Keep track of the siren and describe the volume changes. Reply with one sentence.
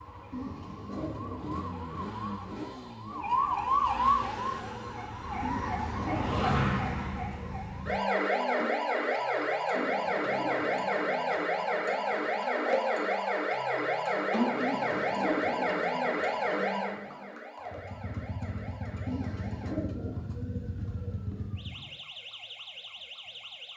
The loudness of the siren goes down.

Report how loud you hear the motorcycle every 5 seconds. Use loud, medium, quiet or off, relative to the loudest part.
loud, off, off, loud, loud.